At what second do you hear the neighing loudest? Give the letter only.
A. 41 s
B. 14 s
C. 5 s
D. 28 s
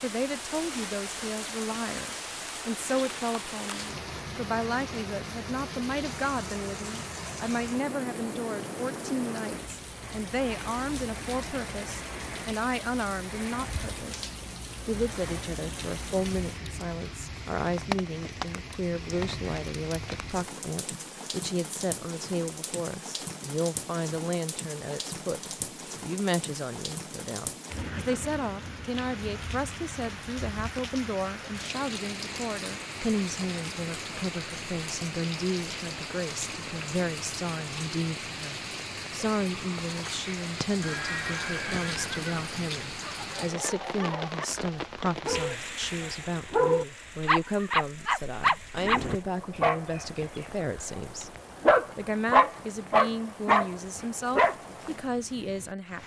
A.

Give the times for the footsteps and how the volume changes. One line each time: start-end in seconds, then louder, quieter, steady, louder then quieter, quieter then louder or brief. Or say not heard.
not heard.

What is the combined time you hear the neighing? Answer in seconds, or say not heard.
2 s.